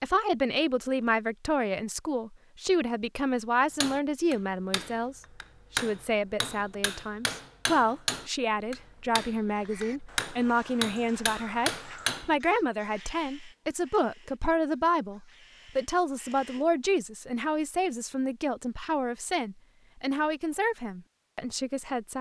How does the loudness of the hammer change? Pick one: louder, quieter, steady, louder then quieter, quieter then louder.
louder.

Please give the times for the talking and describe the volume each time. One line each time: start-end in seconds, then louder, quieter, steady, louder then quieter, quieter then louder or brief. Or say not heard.
0.0-22.1 steady.